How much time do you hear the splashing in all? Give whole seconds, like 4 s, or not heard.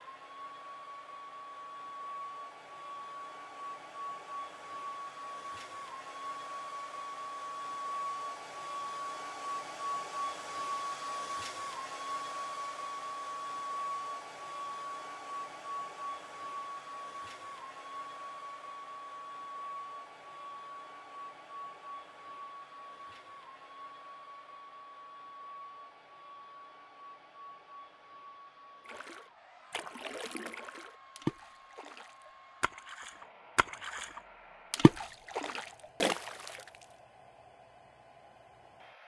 8 s.